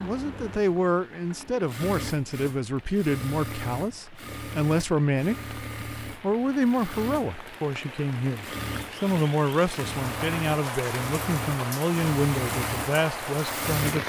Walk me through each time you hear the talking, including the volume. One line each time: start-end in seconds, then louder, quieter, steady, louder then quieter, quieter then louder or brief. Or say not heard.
0.0-14.0 steady.